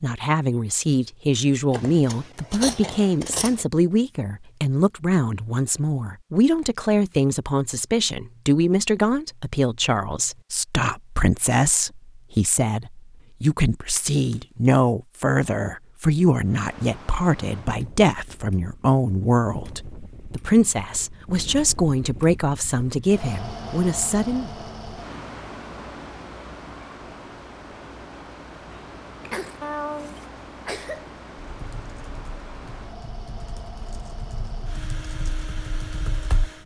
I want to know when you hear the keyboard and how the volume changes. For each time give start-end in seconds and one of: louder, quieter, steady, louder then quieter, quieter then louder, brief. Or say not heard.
31.5-36.5 louder.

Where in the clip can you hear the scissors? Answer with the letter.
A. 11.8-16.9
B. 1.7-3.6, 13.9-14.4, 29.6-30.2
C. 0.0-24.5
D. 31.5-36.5
B.